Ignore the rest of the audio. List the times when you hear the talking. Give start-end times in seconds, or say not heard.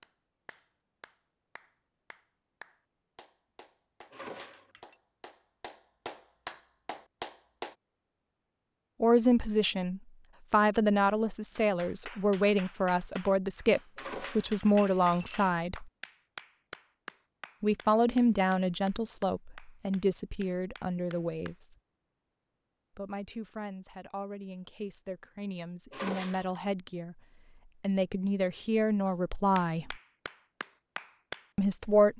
9.0-15.9, 17.6-21.8, 22.9-29.9, 31.6-32.1.